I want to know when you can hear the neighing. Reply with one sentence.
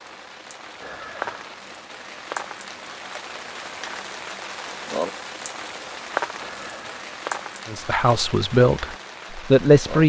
The neighing can be heard from 0.8 to 1.5 s and from 6.4 to 7.0 s.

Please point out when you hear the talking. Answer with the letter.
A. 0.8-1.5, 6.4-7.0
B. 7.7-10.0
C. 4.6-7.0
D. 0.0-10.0
B.